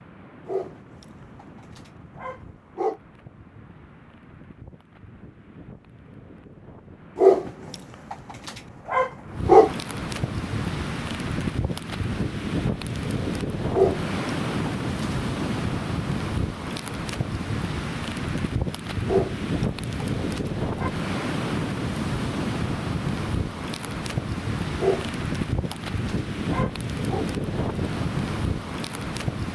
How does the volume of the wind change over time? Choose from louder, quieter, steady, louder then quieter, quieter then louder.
louder.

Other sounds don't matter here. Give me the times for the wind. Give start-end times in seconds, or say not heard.
0.0-29.4.